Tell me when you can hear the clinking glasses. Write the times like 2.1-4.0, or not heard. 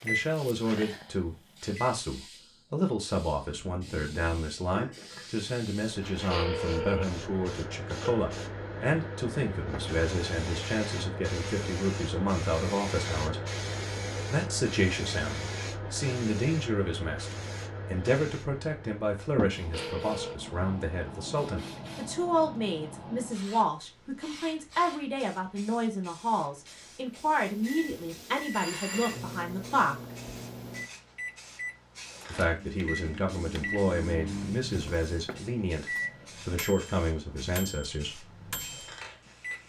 4.8-6.3.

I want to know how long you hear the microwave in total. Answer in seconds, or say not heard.
14 s.